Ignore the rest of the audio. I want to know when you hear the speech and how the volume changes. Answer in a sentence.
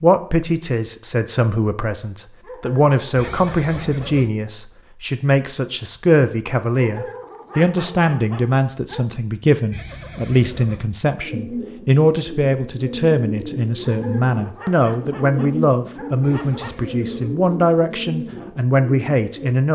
The speech can be heard from 0.0 to 19.7 s, at a steady volume.